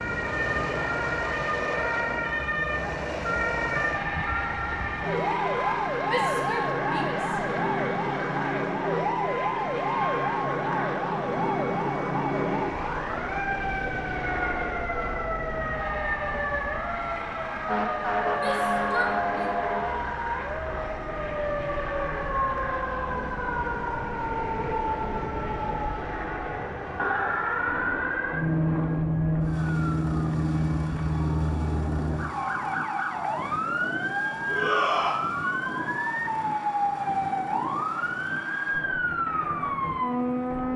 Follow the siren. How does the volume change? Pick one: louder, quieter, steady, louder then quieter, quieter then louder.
steady.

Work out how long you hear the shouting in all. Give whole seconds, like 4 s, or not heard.
3 s.